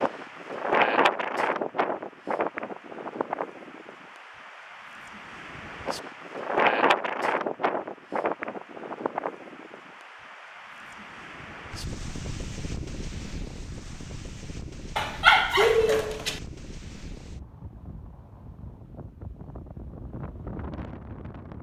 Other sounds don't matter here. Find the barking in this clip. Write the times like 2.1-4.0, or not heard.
14.9-16.4.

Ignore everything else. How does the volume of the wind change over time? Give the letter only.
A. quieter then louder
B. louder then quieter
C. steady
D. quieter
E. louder
D.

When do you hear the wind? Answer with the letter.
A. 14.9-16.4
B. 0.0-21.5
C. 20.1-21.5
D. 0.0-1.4
B.